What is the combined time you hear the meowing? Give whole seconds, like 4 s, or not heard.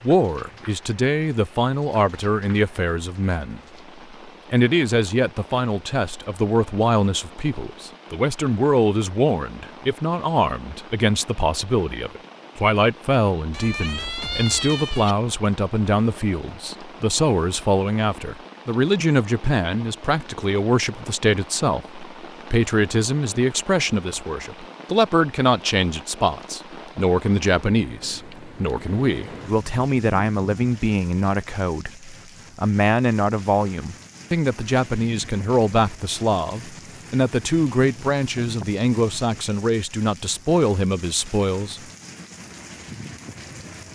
2 s.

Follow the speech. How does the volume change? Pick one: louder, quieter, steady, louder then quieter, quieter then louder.
steady.